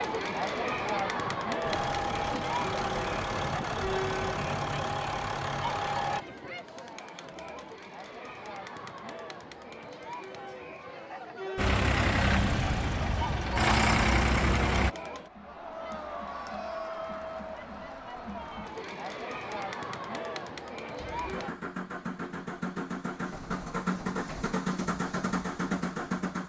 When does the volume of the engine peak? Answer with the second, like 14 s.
14 s.